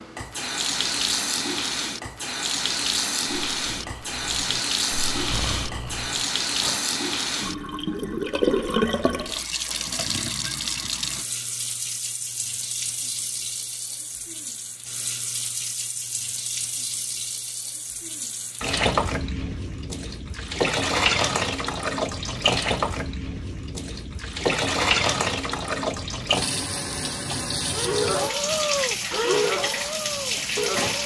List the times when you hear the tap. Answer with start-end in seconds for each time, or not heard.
0.0-31.0.